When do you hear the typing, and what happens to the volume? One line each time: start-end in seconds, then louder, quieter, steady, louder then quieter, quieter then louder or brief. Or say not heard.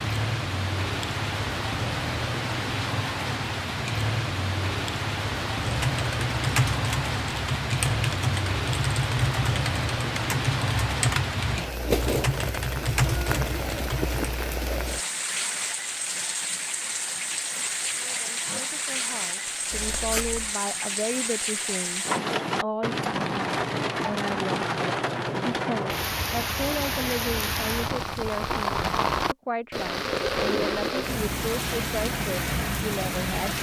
5.6-14.2 steady.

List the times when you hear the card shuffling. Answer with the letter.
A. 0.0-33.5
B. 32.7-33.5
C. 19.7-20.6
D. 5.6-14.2
C.